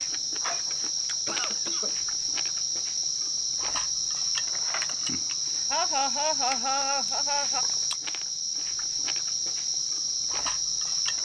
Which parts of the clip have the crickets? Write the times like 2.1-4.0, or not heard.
0.0-11.1.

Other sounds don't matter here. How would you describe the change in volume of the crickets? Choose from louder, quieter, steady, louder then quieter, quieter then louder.
steady.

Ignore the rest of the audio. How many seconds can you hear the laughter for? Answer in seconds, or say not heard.
3 s.